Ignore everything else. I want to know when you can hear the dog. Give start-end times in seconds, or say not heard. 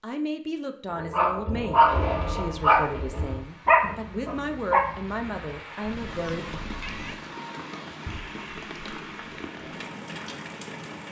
0.9-6.1.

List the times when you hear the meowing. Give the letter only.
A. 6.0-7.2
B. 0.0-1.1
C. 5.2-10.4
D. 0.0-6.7
A.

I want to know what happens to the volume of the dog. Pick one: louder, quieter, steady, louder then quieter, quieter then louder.
quieter.